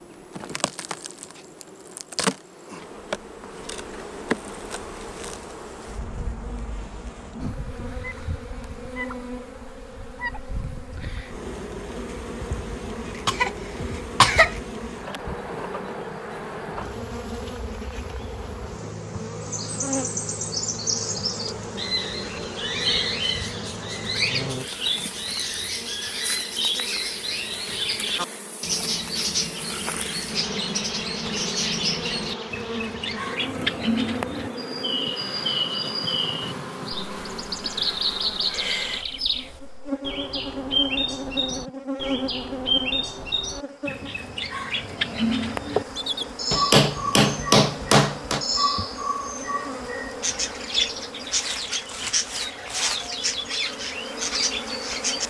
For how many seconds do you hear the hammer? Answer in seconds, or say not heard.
2 s.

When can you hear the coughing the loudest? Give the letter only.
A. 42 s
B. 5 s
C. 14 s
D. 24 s
C.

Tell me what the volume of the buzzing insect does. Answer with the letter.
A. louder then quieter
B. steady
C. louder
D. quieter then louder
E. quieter
B.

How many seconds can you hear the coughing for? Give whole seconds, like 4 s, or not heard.
2 s.